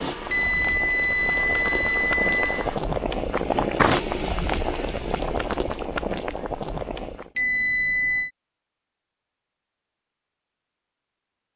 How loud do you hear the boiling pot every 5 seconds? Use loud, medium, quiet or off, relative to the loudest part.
loud, loud, off.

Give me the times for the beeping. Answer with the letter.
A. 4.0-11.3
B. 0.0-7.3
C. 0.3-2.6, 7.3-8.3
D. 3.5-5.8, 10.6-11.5
C.